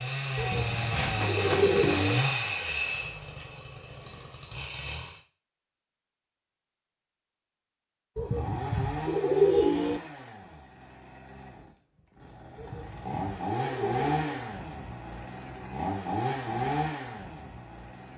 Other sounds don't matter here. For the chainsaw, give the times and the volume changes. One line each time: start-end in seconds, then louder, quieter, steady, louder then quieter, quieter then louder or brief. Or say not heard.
0.0-5.2 quieter
8.2-18.1 quieter then louder.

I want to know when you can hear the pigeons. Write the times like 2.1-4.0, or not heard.
0.3-2.2, 8.2-10.0, 12.6-14.4.